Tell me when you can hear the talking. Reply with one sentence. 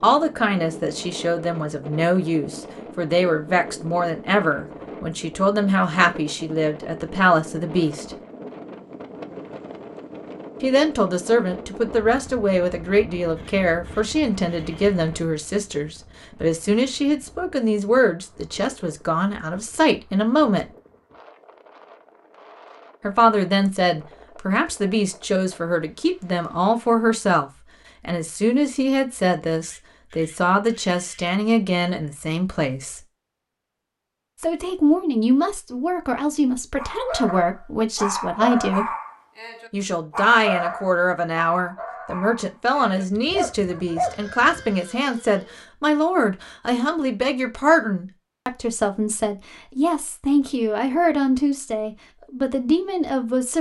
The talking can be heard from 0.0 to 8.2 s, from 10.6 to 20.7 s, from 23.0 to 33.0 s, from 34.4 to 38.9 s and from 39.7 to 53.5 s.